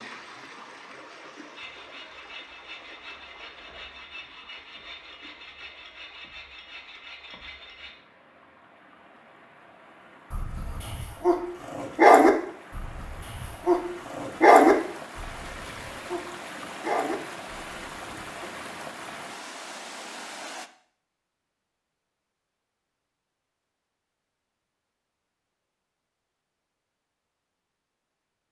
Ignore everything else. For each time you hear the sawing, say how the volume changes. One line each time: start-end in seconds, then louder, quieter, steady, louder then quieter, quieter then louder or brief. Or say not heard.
1.6-8.0 steady.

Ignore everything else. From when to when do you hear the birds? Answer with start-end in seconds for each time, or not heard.
not heard.